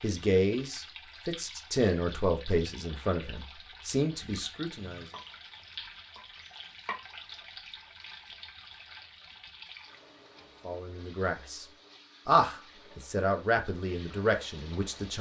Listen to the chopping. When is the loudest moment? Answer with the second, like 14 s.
7 s.